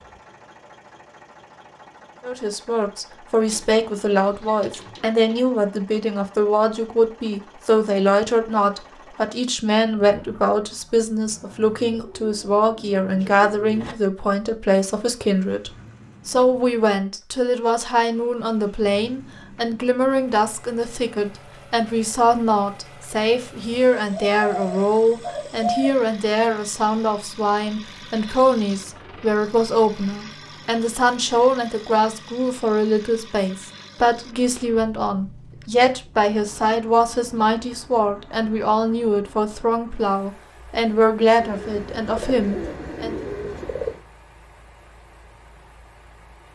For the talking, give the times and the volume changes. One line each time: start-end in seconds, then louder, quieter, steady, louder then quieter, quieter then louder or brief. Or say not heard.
2.2-43.1 steady.